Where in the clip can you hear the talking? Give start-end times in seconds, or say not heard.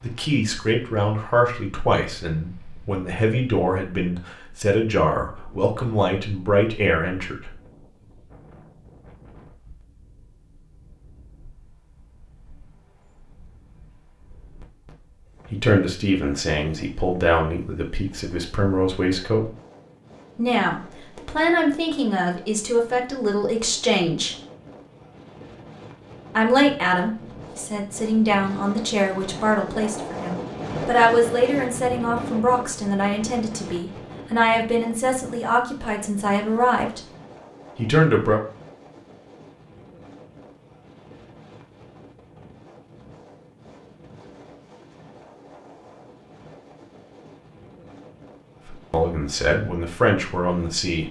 0.0-7.5, 15.5-19.5, 20.4-24.4, 26.4-37.0, 37.8-38.4, 48.6-51.0.